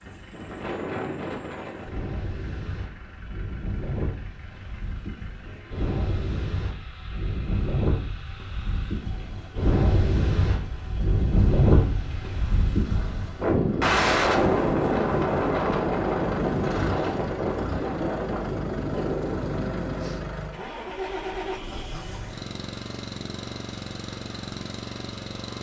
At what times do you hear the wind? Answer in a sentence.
You can hear the wind from 0.0 to 20.3 s.